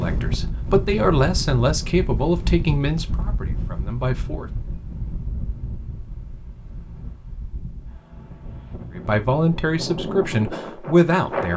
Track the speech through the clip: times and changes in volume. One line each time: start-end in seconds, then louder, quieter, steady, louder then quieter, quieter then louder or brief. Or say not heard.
0.0-4.5 quieter
8.9-11.5 brief.